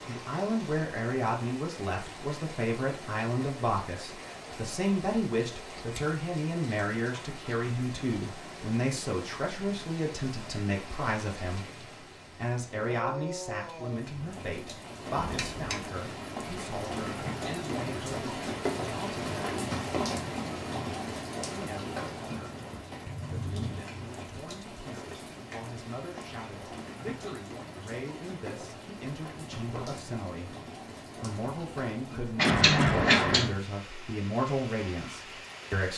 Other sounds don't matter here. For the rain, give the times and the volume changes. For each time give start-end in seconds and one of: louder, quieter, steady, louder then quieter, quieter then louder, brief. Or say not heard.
0.0-35.9 louder then quieter.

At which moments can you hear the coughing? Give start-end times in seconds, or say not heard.
32.5-33.2.